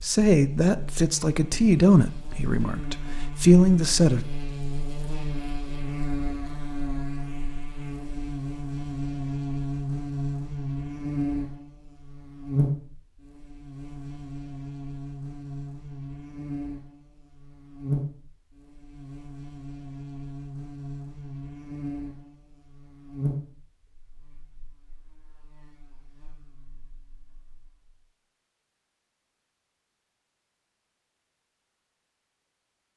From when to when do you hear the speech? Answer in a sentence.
The speech can be heard from 0.0 to 4.2 s.